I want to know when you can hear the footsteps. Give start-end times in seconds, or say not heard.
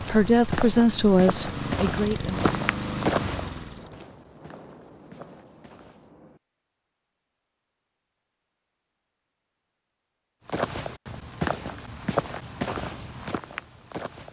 0.0-6.1, 10.4-14.2.